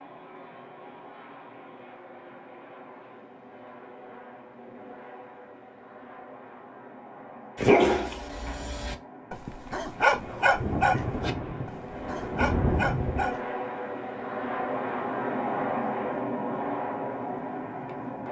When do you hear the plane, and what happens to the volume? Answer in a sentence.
You can hear the plane from 0.0 to 18.2 s, getting louder.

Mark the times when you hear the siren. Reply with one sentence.
You can't hear the siren here.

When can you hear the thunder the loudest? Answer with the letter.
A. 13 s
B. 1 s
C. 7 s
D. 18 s
A.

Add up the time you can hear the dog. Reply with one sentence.
The dog can be heard for 6 seconds in total.